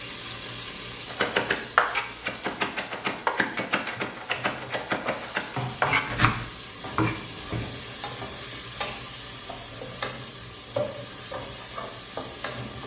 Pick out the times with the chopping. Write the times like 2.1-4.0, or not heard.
1.1-7.7.